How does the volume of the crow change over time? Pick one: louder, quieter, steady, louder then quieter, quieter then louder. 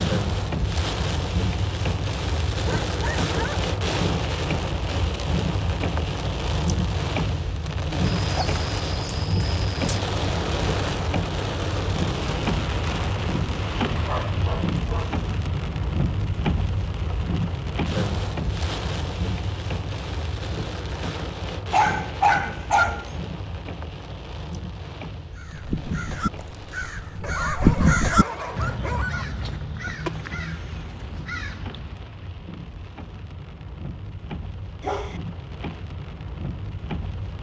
louder then quieter.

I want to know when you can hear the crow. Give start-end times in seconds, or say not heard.
25.3-32.2.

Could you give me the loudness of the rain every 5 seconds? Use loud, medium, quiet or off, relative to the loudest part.
loud, loud, loud, loud, medium, quiet, quiet, medium.